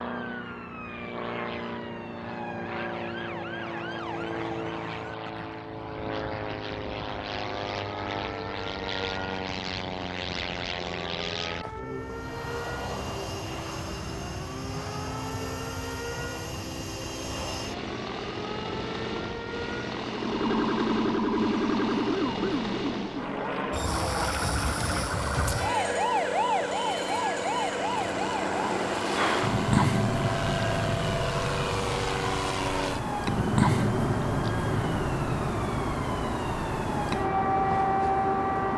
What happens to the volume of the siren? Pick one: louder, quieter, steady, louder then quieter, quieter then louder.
louder.